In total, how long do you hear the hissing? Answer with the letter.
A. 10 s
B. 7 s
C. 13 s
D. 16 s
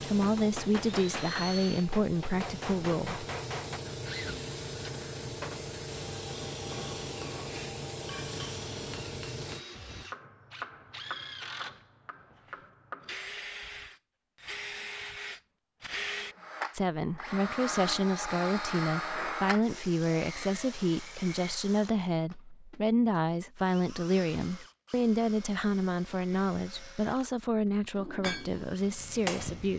A.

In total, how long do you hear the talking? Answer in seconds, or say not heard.
16 s.